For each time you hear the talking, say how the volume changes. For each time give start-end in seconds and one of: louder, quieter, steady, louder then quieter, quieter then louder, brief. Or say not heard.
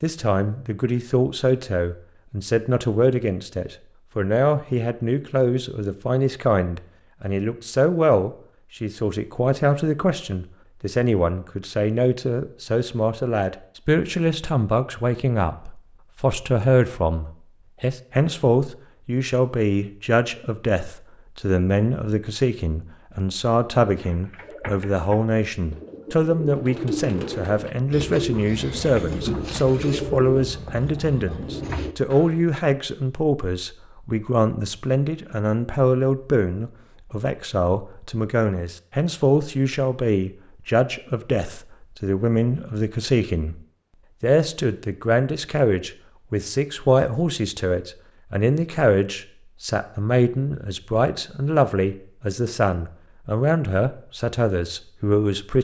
0.0-43.6 steady
44.2-55.5 steady.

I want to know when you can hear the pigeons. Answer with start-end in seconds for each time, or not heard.
23.9-32.4.